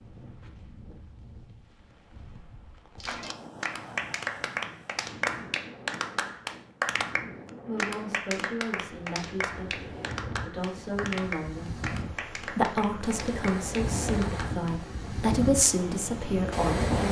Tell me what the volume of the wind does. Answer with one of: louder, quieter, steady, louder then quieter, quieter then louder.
louder.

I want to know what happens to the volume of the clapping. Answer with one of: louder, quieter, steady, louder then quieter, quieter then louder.
quieter.